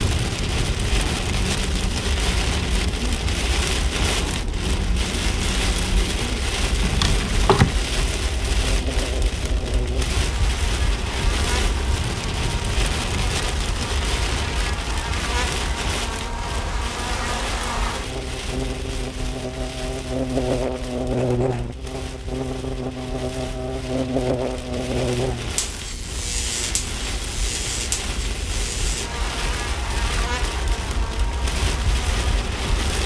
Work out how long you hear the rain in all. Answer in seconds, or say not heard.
33 s.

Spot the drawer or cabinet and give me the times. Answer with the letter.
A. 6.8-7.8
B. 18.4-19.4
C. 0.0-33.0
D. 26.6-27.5
A.